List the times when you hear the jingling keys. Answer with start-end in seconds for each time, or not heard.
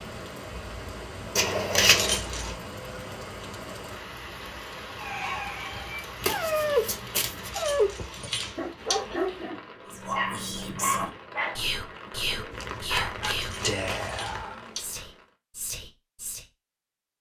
1.8-2.5, 7.3-9.2, 13.3-15.1.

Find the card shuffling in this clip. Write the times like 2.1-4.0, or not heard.
1.4-2.2, 6.2-7.5, 12.5-14.4.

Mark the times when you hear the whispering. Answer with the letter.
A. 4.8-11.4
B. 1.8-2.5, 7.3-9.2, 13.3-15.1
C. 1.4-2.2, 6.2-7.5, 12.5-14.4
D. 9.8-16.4
D.